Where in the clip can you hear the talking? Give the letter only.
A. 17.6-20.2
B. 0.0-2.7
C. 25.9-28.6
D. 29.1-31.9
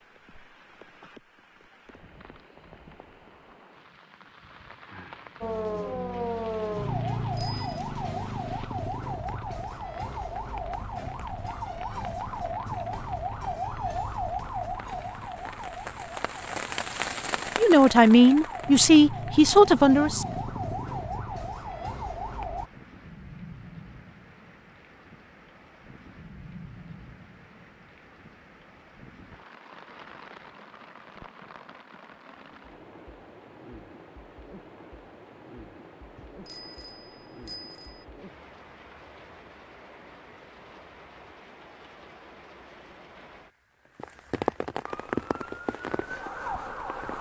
A.